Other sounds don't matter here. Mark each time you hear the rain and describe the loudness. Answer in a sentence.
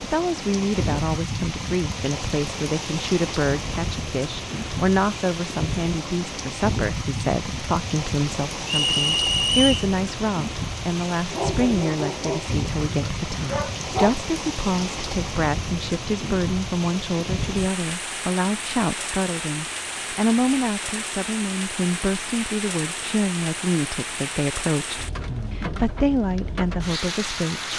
You can hear the rain from 0.0 to 27.7 s, at a steady volume.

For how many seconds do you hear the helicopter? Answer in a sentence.
The helicopter can't be heard in this clip.